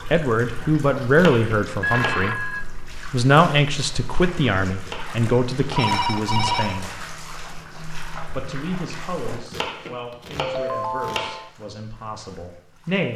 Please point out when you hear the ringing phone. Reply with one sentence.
The ringing phone can be heard from 1.8 to 2.6 s, from 5.2 to 6.9 s and from 10.4 to 11.5 s.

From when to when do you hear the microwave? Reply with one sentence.
The microwave can't be heard in this clip.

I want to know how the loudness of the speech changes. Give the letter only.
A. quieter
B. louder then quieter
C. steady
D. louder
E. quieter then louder
A.